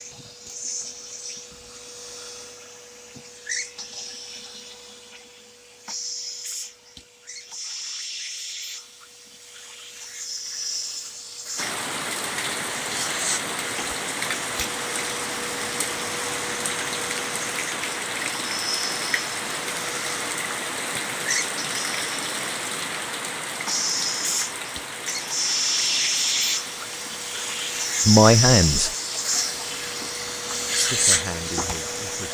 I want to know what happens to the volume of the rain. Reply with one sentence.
The volume of the rain goes down.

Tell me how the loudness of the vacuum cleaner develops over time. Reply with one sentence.
The loudness of the vacuum cleaner goes up.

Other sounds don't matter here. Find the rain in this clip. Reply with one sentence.
The rain can be heard from 11.6 to 32.2 s.